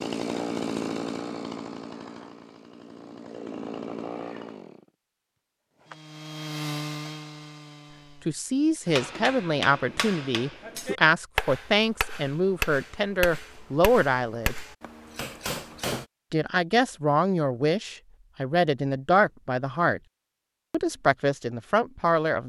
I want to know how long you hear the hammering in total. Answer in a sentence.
You can hear the hammering for 7 seconds altogether.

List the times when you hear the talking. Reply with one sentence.
The talking can be heard from 8.2 to 14.6 s, from 16.3 to 20.0 s and from 20.7 to 22.4 s.